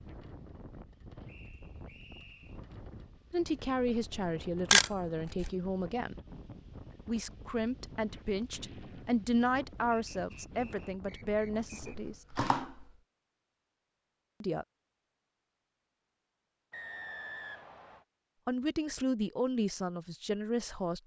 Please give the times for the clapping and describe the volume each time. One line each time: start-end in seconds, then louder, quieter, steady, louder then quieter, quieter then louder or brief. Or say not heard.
not heard.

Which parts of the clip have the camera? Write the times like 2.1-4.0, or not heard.
4.7-5.5, 11.8-12.8.